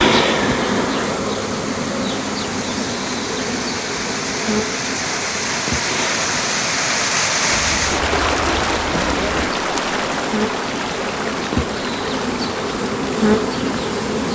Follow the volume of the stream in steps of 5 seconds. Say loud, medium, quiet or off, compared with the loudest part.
medium, loud, medium.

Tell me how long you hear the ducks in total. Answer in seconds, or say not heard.
2 s.